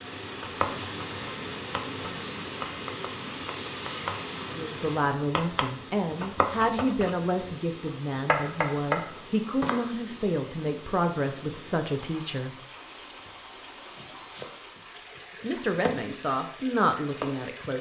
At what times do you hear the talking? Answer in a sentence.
The talking can be heard from 4.5 to 12.6 s and from 15.3 to 17.7 s.